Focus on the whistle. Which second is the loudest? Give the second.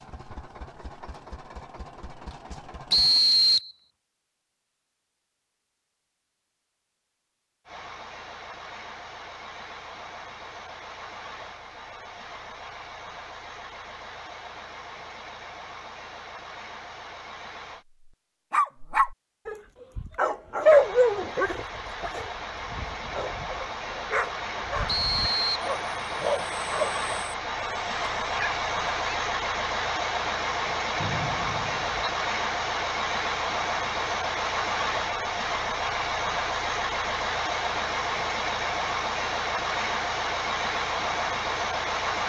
3 s.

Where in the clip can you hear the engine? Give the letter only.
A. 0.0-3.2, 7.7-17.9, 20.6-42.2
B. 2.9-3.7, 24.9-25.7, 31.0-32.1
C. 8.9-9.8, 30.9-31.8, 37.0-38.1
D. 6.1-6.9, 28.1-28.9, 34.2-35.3
A.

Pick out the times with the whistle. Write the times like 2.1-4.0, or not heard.
2.9-3.7, 24.9-25.7, 31.0-32.1.